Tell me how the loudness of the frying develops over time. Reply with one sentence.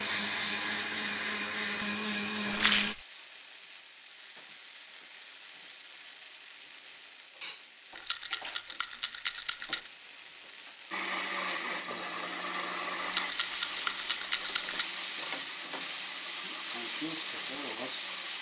The volume of the frying goes up.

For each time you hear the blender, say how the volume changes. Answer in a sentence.
The blender can be heard briefly from 0.0 to 3.0 s; and from 10.9 to 18.3 s, getting quieter.